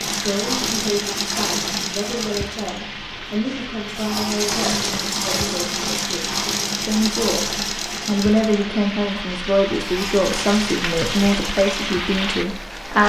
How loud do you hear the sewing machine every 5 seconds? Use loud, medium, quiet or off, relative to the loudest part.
loud, loud, medium.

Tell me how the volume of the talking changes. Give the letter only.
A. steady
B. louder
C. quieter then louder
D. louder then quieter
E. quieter
B.